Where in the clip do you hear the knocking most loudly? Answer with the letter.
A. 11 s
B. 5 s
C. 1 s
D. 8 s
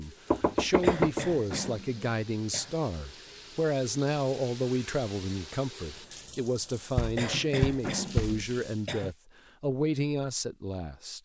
C.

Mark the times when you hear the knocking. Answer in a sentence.
The knocking can be heard from 0.3 to 1.2 s and from 7.0 to 8.5 s.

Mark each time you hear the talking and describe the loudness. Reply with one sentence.
You can hear the talking from 0.0 to 11.2 s, at a steady volume.